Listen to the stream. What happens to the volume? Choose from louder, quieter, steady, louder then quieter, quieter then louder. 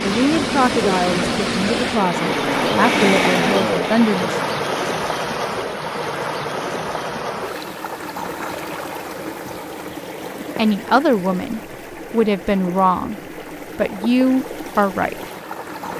quieter.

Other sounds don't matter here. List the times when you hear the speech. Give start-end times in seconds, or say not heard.
0.0-4.3, 10.6-15.2.